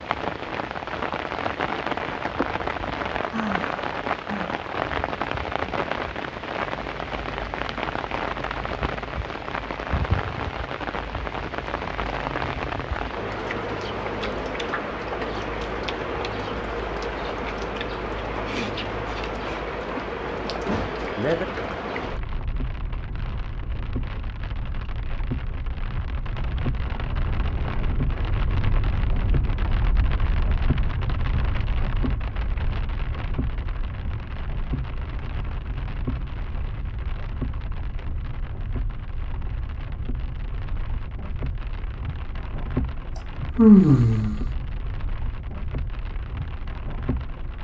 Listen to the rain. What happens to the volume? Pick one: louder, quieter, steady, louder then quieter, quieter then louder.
quieter.